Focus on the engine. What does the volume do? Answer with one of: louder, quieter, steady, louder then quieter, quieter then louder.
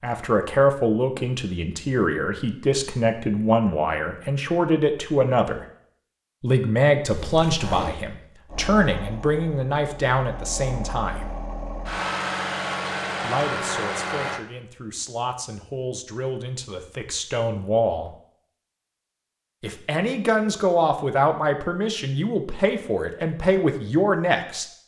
louder.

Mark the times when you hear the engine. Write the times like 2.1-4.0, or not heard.
8.4-14.4.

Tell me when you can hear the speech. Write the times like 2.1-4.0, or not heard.
0.0-5.6, 6.4-11.3, 13.2-18.1, 19.6-24.6.